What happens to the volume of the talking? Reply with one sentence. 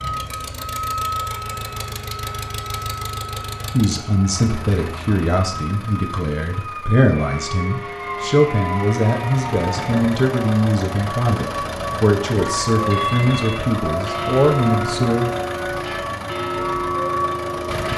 The loudness of the talking stays about the same.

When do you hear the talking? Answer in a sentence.
You can hear the talking from 3.7 to 15.3 s.